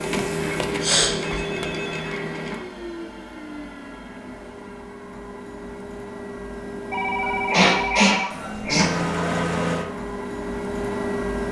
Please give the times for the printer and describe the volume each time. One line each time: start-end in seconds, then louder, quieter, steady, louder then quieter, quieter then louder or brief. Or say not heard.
0.0-11.4 quieter then louder.